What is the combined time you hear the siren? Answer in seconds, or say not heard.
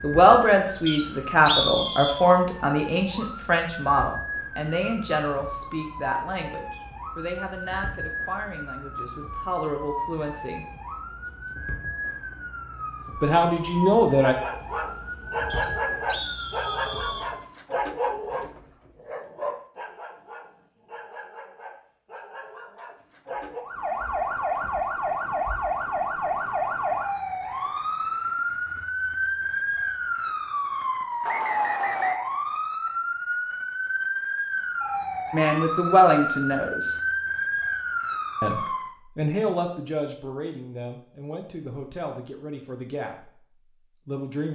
33 s.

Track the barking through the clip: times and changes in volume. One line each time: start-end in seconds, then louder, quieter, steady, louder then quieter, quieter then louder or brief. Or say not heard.
14.2-23.6 quieter.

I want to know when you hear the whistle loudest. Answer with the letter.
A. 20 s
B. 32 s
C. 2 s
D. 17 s
C.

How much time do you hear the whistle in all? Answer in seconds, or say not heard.
4 s.